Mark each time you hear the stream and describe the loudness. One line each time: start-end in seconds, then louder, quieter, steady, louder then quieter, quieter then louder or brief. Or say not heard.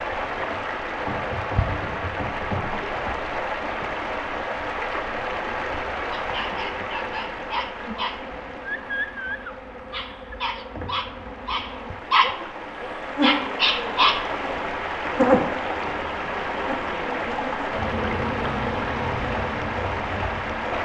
0.0-20.7 quieter then louder.